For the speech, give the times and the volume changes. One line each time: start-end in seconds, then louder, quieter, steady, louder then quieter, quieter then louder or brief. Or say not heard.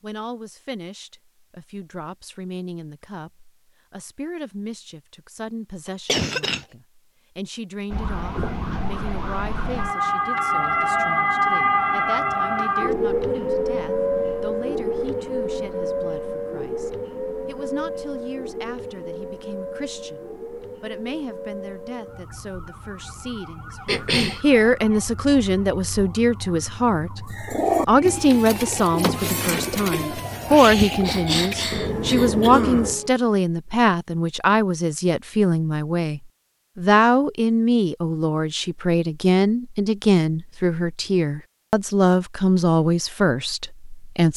0.0-44.3 louder.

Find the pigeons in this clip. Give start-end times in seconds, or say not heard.
27.3-33.0.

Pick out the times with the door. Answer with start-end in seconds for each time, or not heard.
not heard.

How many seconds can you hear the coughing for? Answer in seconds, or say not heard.
3 s.